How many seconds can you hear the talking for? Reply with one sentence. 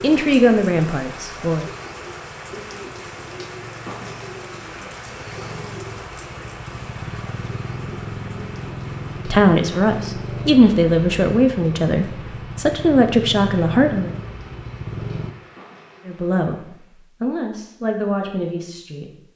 The talking can be heard for 10 seconds in total.